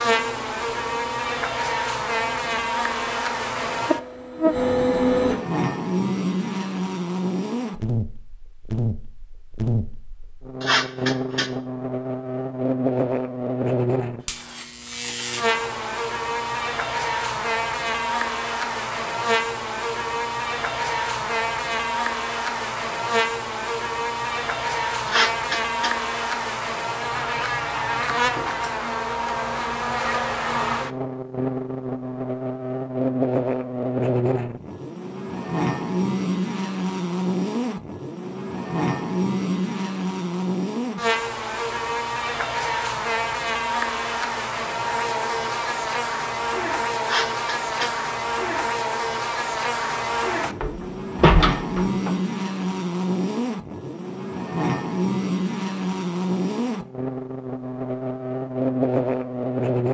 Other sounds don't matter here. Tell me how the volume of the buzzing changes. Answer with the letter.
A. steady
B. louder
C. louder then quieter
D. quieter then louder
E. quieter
A.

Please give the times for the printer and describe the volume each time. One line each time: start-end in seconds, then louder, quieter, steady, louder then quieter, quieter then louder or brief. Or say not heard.
0.0-5.3 louder.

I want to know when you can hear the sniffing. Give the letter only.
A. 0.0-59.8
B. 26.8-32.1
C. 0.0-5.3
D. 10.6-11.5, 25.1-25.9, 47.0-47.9
D.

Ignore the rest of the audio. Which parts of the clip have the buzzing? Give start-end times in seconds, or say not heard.
0.0-59.8.